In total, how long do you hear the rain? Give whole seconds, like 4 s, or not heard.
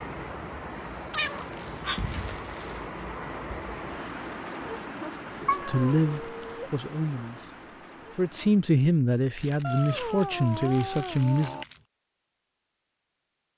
9 s.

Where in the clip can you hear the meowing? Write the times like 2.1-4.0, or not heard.
1.1-2.2, 5.5-6.7, 9.6-11.7.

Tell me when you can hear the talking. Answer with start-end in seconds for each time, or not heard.
5.4-7.5, 8.2-11.6.